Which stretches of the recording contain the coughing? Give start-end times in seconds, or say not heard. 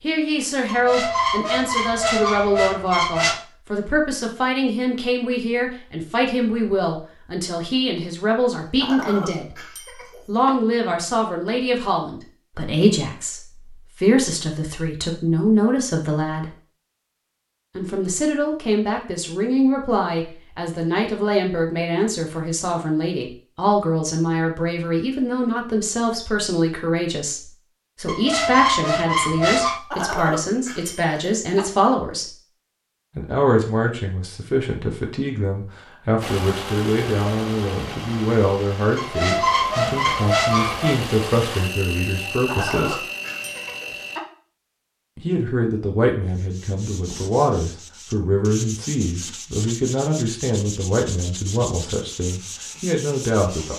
8.6-10.6, 29.7-31.6, 42.2-44.2.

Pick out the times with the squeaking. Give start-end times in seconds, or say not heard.
0.7-3.5, 28.1-29.8, 39.0-41.0.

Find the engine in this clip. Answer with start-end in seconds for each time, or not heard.
36.2-44.2.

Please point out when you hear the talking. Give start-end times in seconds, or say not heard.
0.0-9.6, 10.2-16.5, 17.8-32.4, 33.1-43.0, 45.1-53.7.